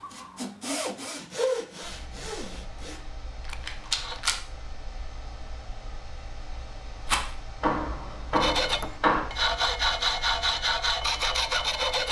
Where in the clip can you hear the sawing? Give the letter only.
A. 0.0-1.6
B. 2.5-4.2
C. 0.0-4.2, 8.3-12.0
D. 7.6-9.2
C.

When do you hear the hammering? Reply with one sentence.
The hammering can be heard from 7.6 to 9.2 s.